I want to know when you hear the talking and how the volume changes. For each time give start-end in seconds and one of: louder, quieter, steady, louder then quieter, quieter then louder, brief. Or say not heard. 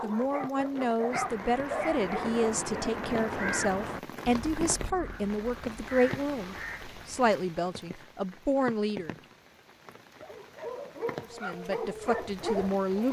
0.0-9.2 steady
11.3-13.0 brief.